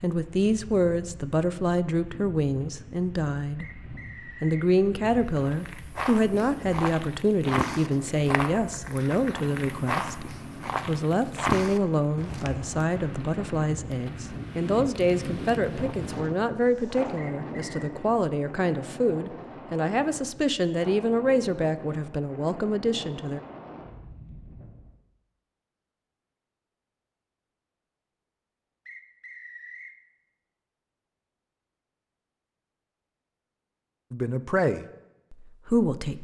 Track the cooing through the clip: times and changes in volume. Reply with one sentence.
The cooing can't be heard in this clip.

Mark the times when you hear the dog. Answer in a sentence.
You can't hear the dog here.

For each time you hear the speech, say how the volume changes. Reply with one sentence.
The speech can be heard from 0.0 to 23.4 s, at a steady volume; and briefly from 34.1 to 36.1 s.